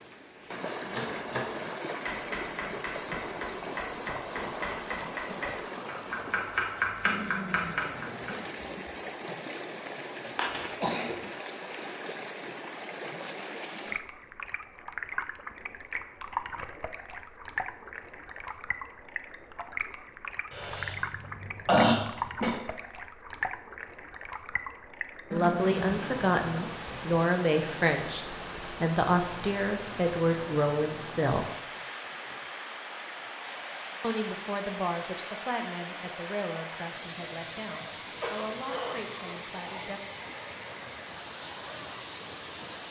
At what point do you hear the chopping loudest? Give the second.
7 s.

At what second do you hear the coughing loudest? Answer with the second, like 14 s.
22 s.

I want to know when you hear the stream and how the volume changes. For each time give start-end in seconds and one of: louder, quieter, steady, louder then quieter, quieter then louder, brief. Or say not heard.
0.0-42.8 steady.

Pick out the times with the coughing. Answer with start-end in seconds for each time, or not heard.
10.3-11.2, 20.5-22.6, 38.0-39.5.